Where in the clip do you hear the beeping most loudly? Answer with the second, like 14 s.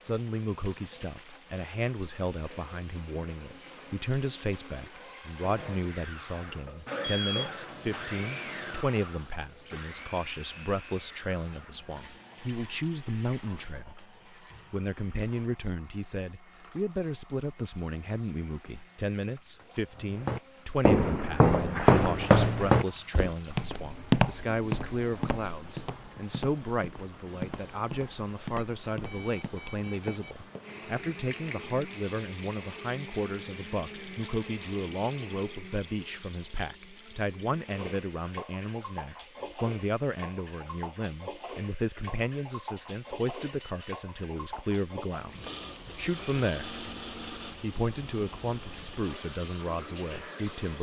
7 s.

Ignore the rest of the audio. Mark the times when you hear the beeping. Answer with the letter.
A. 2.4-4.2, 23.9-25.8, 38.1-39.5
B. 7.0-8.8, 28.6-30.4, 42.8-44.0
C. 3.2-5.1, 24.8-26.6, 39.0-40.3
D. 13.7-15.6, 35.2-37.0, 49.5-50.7
B.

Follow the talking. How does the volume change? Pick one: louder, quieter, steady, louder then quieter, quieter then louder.
steady.